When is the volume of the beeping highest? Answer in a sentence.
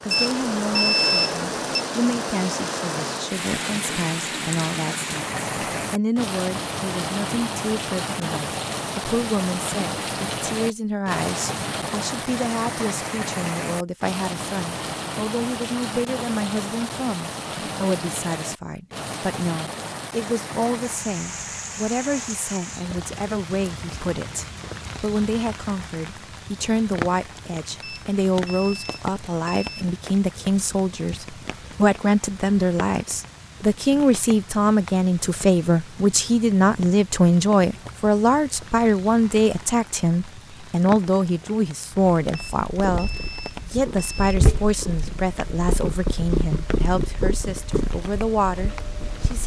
The loudest moment of the beeping is at 1 second.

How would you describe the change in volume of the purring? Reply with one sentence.
The loudness of the purring goes up, then down.